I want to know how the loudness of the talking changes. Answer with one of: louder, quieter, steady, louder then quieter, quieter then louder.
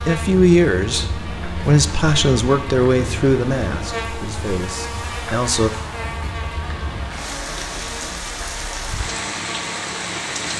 quieter.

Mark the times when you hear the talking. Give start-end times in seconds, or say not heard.
0.0-5.7.